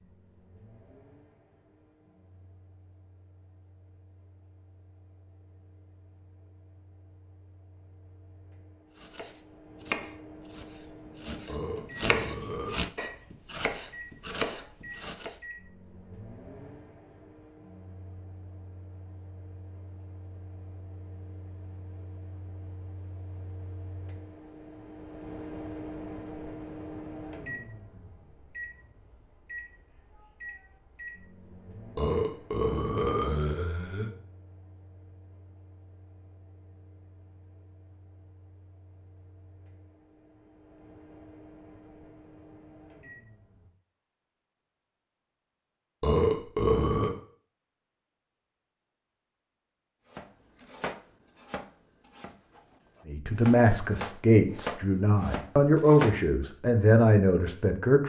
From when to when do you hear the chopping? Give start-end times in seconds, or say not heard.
9.0-15.3, 50.1-56.2.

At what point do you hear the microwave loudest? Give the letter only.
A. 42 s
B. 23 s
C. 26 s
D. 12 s
C.